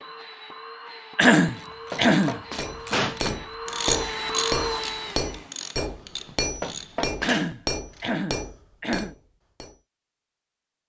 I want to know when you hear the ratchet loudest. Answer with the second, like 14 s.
4 s.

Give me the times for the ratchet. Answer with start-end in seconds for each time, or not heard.
1.6-8.2.